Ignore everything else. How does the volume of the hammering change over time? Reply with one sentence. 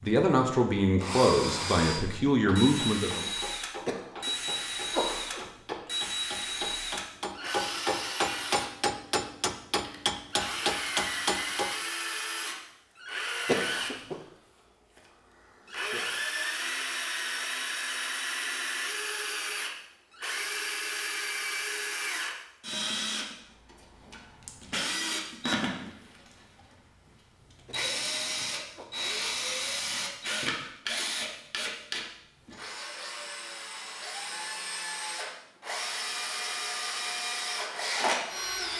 The loudness of the hammering goes up.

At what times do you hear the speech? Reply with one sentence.
You can hear the speech from 0.0 to 3.3 s.